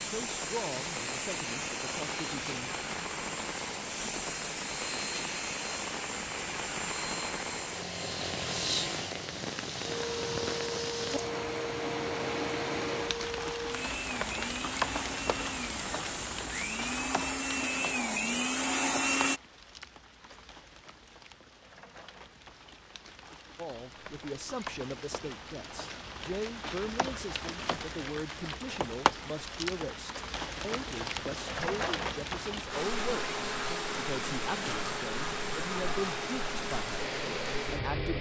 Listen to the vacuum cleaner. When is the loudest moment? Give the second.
19 s.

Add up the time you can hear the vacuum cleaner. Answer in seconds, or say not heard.
25 s.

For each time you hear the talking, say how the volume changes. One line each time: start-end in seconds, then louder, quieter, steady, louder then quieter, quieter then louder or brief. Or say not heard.
0.0-2.7 brief
23.6-38.1 steady.